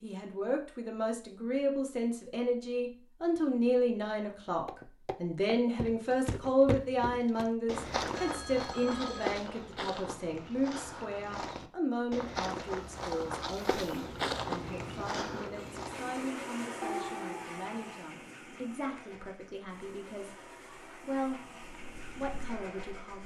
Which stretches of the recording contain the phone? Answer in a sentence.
You can hear the phone from 8.2 to 9.3 s and from 16.8 to 18.0 s.